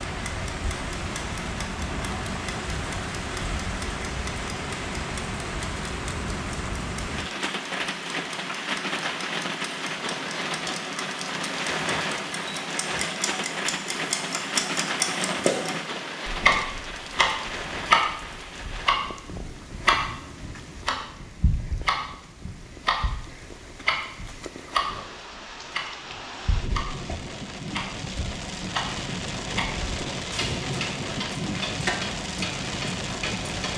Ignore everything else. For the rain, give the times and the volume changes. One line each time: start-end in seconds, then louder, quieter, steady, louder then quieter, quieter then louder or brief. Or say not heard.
0.0-33.7 quieter then louder.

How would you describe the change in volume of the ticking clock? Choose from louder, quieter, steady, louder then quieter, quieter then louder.
louder then quieter.